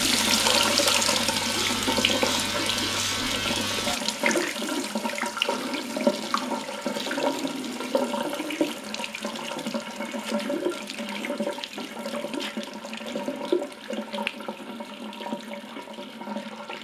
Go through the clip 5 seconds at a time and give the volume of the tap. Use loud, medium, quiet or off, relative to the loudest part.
loud, loud, medium, medium.